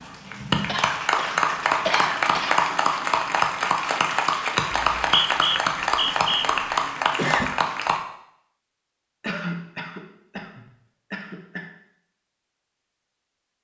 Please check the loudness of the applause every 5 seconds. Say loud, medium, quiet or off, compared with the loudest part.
loud, loud, off.